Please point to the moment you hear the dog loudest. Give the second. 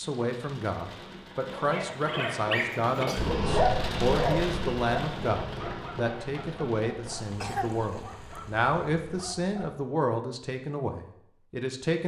4 s.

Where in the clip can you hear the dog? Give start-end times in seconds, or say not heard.
1.4-9.8.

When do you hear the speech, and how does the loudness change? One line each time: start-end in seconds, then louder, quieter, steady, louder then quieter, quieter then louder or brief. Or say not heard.
0.0-12.0 steady.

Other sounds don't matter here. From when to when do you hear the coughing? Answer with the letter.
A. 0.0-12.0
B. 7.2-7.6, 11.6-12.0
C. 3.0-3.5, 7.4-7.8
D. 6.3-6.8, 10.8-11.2
C.